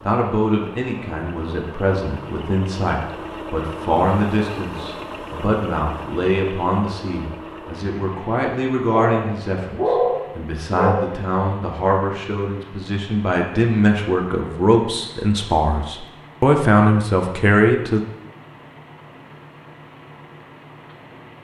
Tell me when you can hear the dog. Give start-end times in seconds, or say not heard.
9.0-10.9.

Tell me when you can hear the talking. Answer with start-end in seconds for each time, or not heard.
0.1-18.0.